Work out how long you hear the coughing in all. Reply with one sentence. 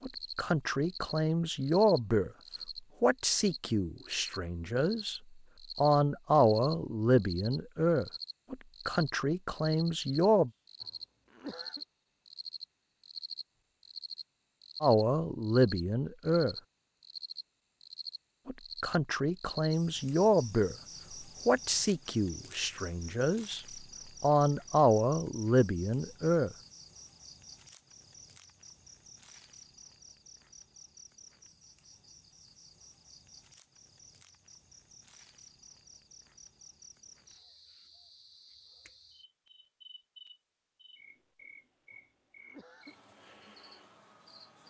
The coughing can be heard for 2 seconds in total.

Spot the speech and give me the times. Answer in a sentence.
You can hear the speech from 0.0 to 2.3 s, from 3.0 to 10.5 s, from 14.8 to 16.6 s, from 18.4 to 20.8 s, from 21.4 to 23.6 s and from 24.2 to 26.6 s.